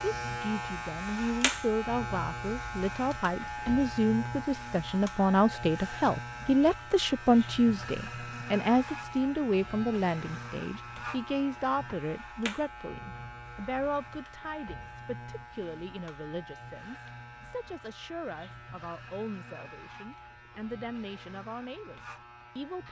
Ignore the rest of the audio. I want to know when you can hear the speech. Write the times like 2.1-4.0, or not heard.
0.0-22.8.